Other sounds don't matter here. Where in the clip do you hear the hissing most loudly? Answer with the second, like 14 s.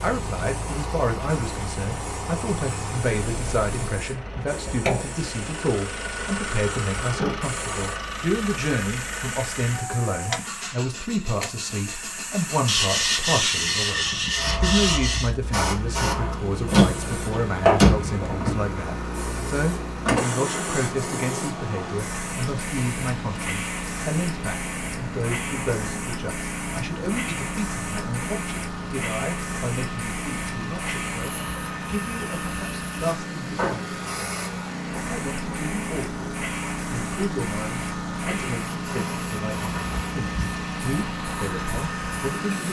18 s.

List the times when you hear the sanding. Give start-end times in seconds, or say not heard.
12.7-15.3.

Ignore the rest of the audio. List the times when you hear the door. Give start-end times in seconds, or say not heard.
16.7-18.1.